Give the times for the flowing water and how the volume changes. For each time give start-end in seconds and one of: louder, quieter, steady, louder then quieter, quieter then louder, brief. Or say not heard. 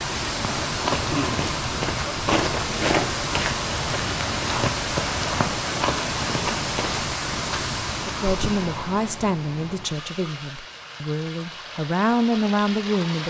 0.0-13.2 quieter.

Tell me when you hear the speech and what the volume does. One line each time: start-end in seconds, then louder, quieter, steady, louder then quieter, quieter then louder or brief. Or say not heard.
8.1-13.2 quieter then louder.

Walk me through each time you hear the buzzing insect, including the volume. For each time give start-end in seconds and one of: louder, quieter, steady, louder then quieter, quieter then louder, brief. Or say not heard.
not heard.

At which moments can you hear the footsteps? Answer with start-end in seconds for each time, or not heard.
0.4-7.0.